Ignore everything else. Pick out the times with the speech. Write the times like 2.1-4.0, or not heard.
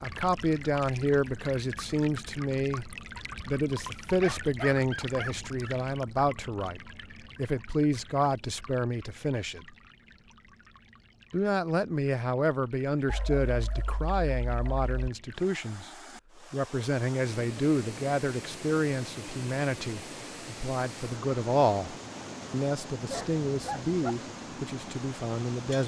0.0-9.8, 11.3-15.9, 16.5-25.8.